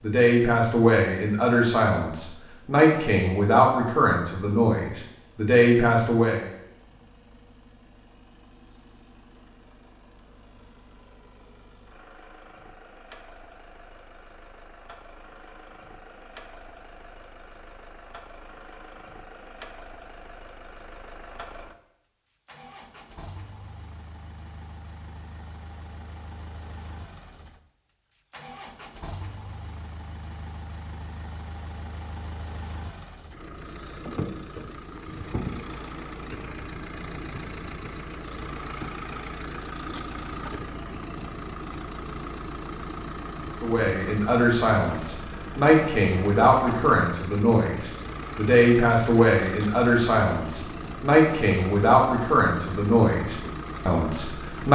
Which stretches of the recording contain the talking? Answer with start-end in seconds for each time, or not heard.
0.0-6.5, 43.6-54.6.